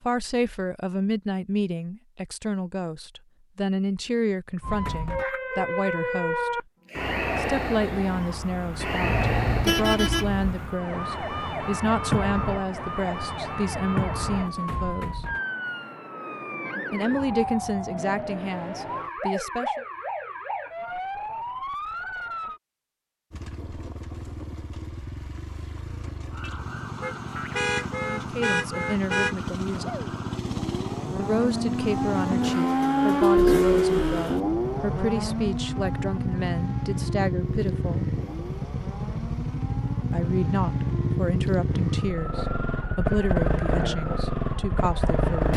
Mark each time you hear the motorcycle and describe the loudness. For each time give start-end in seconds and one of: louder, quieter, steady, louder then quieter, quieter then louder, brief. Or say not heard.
23.3-45.5 louder.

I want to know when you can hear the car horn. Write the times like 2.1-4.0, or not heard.
9.0-10.7, 27.0-29.4.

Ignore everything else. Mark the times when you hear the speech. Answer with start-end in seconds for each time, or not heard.
0.0-6.6, 7.3-15.2, 16.9-19.9, 28.0-29.9, 31.1-38.1, 40.1-45.5.